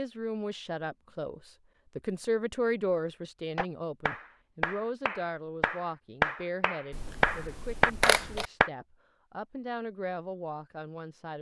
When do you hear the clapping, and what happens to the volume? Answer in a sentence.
The clapping can be heard from 3.5 to 8.7 s, getting louder.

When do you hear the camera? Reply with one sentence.
You can hear the camera from 6.9 to 8.4 s.